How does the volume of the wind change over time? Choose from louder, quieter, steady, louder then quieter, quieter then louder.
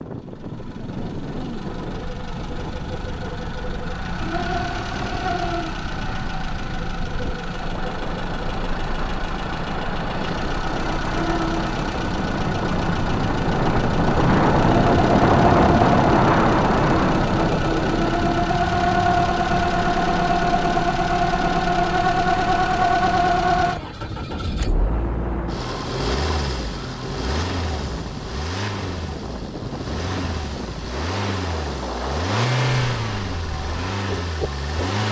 louder then quieter.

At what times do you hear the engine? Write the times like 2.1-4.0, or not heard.
0.0-35.0.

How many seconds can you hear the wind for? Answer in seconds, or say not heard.
35 s.